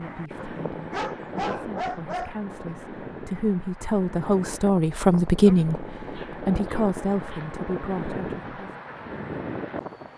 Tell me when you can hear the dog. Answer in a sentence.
You can hear the dog from 0.3 to 2.4 s and from 6.1 to 7.5 s.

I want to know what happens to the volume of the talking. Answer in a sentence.
The loudness of the talking goes up, then down.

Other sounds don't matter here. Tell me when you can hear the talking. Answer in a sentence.
You can hear the talking from 0.0 to 8.8 s.